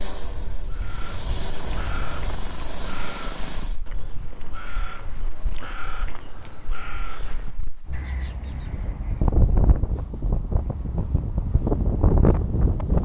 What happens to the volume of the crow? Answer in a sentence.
The loudness of the crow goes down.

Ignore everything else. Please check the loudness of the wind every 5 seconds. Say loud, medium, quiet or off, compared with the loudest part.
quiet, medium, loud.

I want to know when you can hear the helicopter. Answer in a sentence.
The helicopter can be heard from 0.0 to 3.8 s.